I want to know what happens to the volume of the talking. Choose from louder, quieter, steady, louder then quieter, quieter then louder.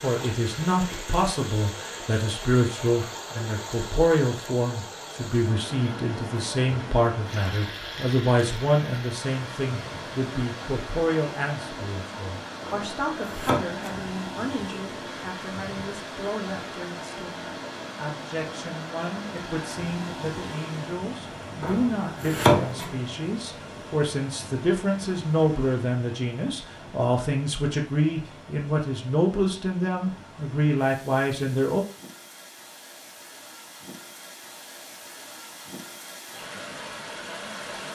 quieter then louder.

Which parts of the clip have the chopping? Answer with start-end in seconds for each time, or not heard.
12.7-13.9, 21.6-22.9.